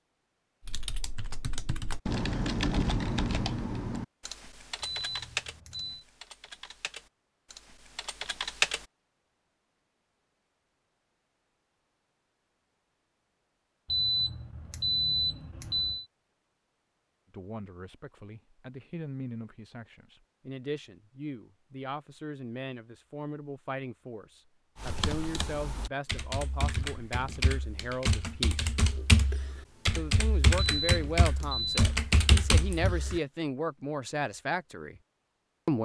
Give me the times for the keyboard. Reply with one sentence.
You can hear the keyboard from 0.7 to 8.8 s and from 24.8 to 33.2 s.